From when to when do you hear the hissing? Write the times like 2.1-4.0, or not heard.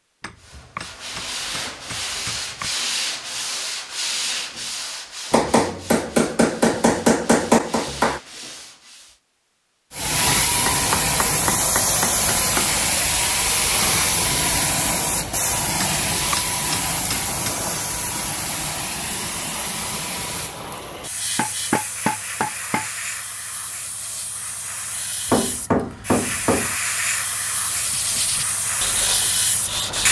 9.9-30.0.